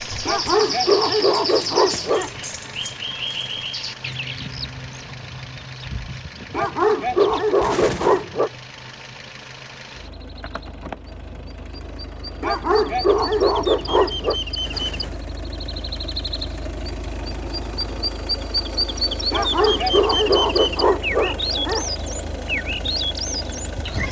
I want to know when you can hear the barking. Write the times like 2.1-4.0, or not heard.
0.2-2.3, 6.5-8.5, 12.4-14.3, 19.3-21.9.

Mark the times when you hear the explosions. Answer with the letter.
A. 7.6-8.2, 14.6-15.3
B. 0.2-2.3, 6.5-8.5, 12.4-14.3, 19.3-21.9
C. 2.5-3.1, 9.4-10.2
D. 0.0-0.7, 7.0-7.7
A.